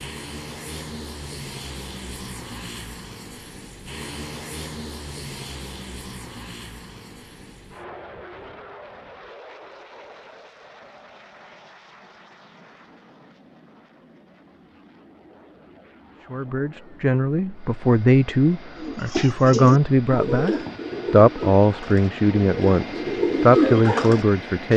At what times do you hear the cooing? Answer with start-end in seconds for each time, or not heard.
18.8-24.2.